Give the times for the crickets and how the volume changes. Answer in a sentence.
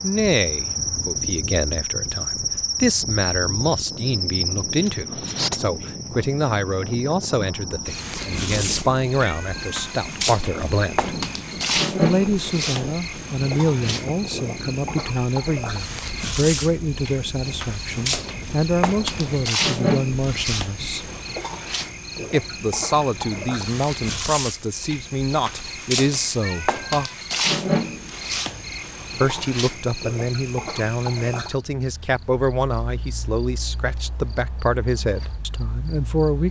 You can hear the crickets from 0.0 to 36.4 s, getting quieter.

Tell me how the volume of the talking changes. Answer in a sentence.
The loudness of the talking stays about the same.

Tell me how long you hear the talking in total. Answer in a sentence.
You can hear the talking for 32 seconds altogether.